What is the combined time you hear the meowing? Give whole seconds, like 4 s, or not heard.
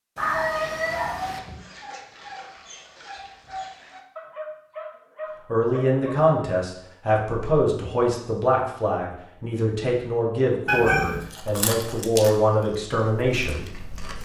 2 s.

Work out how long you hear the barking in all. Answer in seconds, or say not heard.
6 s.